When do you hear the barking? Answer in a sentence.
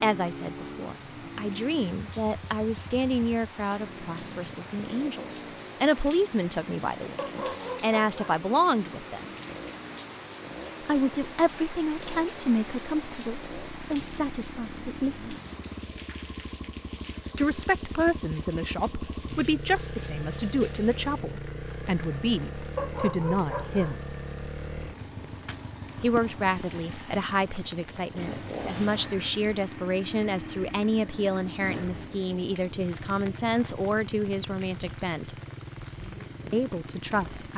You can hear the barking from 7.2 to 8.4 s and from 22.8 to 24.0 s.